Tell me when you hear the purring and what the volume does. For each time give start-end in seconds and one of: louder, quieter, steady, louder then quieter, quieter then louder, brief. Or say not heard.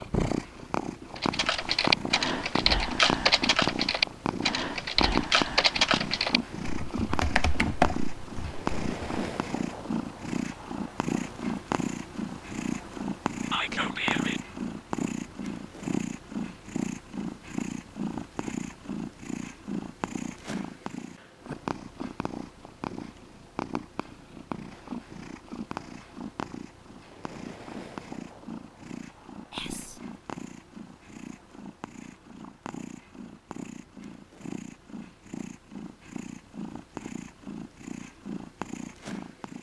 0.0-39.5 quieter.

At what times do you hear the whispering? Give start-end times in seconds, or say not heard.
13.5-14.4, 29.5-30.0.